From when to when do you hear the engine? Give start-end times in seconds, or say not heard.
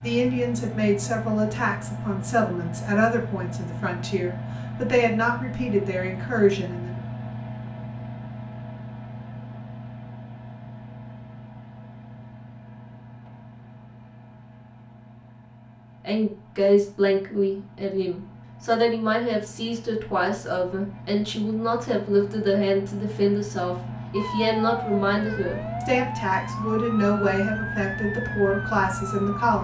0.0-29.6.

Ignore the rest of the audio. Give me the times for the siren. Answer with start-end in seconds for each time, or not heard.
24.1-29.4.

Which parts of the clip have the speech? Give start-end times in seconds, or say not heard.
0.0-7.0, 16.0-29.6.